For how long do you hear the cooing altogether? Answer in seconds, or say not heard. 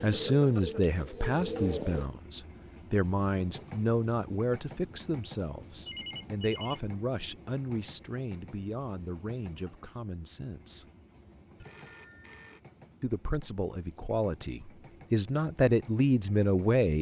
2 s.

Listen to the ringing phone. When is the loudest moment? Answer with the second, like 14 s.
6 s.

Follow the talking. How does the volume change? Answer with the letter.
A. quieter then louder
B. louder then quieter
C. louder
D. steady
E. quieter
A.